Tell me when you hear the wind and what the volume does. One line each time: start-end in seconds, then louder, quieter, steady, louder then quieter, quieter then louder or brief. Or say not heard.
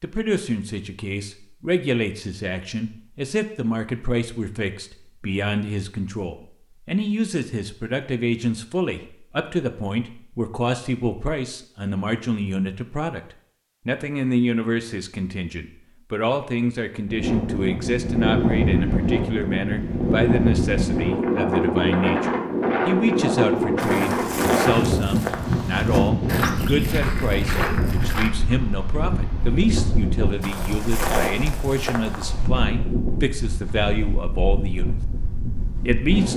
17.1-36.3 quieter.